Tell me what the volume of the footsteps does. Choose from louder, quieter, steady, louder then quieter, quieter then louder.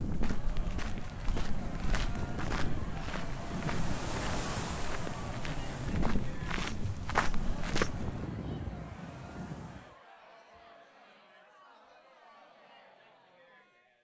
louder.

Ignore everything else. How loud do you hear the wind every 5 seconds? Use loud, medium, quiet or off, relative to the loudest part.
loud, loud, off.